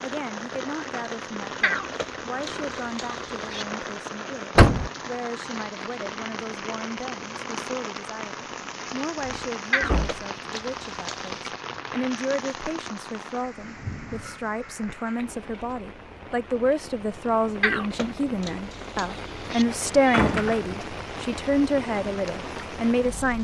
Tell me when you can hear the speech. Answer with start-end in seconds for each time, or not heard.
0.0-23.3.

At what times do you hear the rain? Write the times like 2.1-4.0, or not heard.
0.0-23.3.